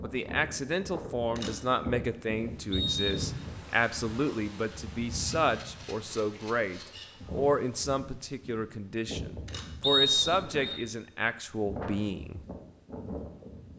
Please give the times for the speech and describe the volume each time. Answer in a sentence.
You can hear the speech from 0.0 to 12.4 s, at a steady volume.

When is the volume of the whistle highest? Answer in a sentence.
The loudest moment of the whistle is at 10 seconds.